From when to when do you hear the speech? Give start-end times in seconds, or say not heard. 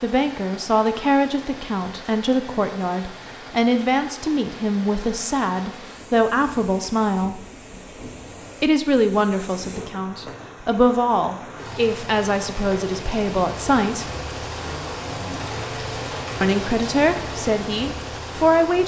0.0-7.5, 8.6-14.1, 16.4-18.8.